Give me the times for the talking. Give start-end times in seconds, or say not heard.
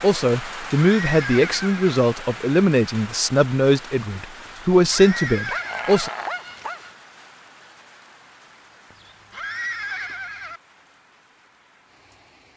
0.0-6.1.